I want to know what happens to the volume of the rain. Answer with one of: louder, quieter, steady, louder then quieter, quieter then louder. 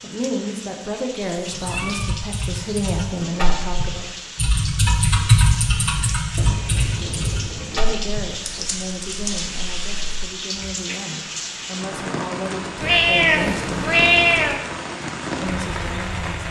louder.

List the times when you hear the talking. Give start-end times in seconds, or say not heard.
0.0-4.0, 6.8-13.8, 15.4-16.4.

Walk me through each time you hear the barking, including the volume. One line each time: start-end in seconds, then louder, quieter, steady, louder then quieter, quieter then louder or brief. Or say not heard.
not heard.